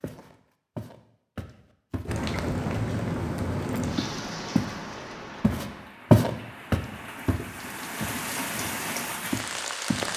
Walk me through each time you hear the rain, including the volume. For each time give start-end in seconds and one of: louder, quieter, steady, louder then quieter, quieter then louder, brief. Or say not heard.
2.0-10.1 quieter then louder.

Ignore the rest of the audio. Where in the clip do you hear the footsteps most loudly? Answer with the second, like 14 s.
6 s.